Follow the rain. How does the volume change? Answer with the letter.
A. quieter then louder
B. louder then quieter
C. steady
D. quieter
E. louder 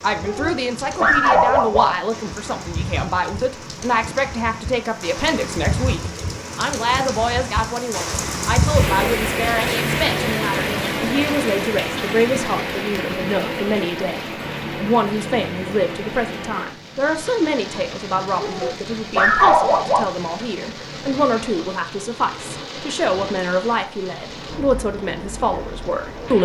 B.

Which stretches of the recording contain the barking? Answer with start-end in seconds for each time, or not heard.
0.2-1.9, 18.4-20.1.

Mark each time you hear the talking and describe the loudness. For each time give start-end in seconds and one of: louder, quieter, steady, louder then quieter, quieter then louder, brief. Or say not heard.
0.0-26.3 steady.